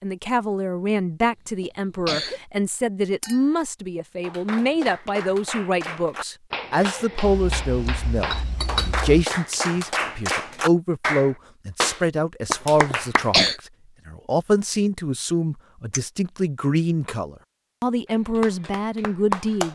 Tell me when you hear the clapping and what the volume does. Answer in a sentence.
The clapping can be heard from 4.2 to 13.5 s, getting louder; and briefly from 18.1 to 19.6 s.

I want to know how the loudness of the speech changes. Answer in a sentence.
The volume of the speech stays about the same.